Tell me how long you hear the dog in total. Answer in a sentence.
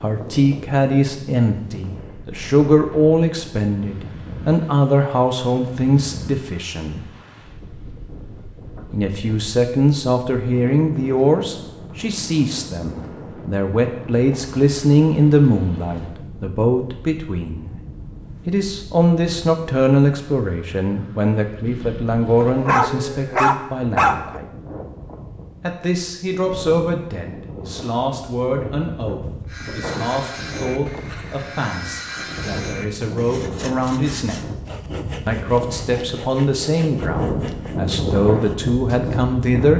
You can hear the dog for 2 seconds altogether.